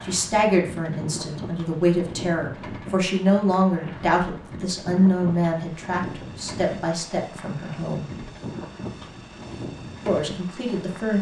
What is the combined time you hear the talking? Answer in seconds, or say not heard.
9 s.